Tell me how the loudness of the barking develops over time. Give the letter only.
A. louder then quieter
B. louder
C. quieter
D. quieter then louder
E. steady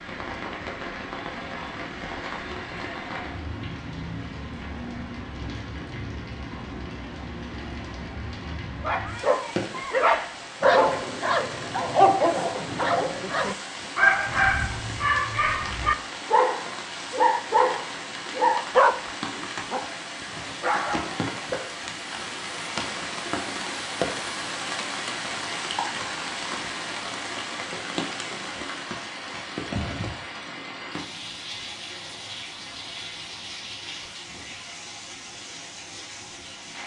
E.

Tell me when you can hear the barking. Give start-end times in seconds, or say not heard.
8.8-21.2.